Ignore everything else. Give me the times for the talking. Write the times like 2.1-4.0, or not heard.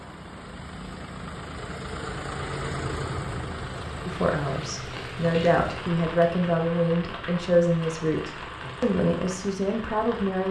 4.0-10.4.